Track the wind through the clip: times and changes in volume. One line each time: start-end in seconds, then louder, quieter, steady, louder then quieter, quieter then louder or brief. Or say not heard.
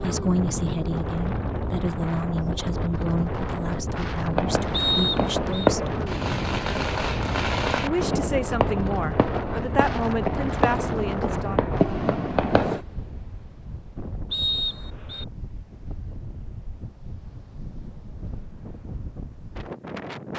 0.0-20.3 quieter.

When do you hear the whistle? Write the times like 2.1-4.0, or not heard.
4.7-5.7, 14.3-15.2.